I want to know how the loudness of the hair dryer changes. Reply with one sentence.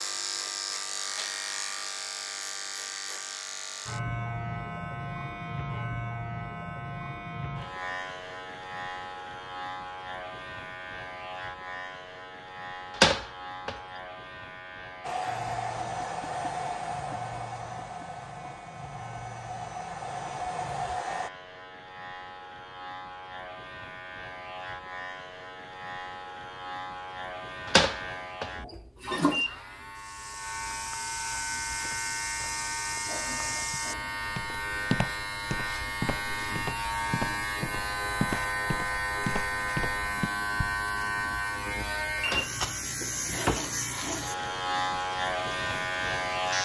The loudness of the hair dryer goes down, then up.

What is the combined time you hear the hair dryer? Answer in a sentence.
The hair dryer can be heard for 6 seconds in total.